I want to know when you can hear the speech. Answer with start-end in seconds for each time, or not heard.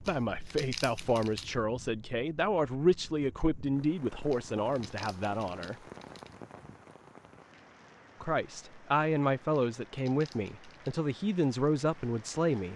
0.0-5.8, 8.2-12.7.